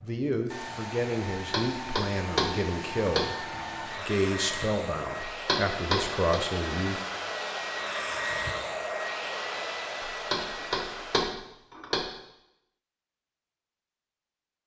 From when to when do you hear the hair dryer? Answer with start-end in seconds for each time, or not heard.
0.0-11.3.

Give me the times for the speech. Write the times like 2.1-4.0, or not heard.
0.0-7.0.